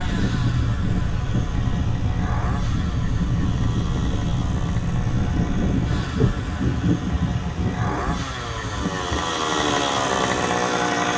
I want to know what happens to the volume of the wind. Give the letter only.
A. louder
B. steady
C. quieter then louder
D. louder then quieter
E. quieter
E.